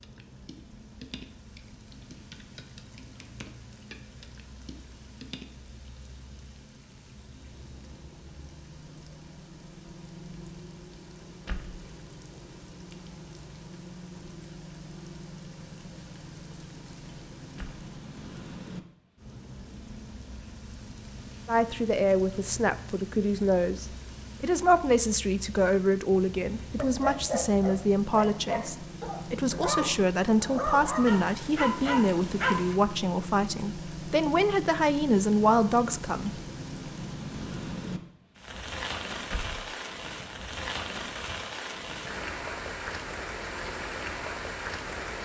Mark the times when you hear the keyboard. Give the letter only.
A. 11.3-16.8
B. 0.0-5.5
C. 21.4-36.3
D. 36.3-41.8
B.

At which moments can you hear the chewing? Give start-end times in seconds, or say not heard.
not heard.